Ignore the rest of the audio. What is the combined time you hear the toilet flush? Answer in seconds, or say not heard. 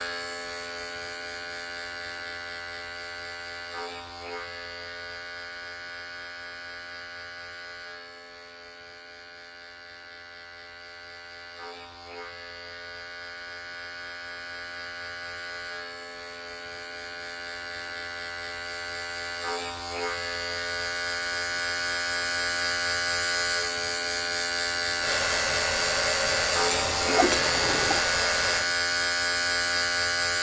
2 s.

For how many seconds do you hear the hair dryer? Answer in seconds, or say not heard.
4 s.